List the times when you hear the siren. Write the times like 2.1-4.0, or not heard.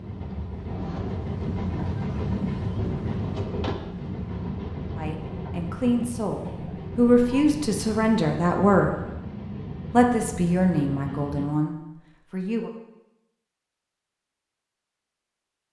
not heard.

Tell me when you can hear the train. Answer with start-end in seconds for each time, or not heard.
0.0-11.5.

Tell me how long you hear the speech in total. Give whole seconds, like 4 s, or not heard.
7 s.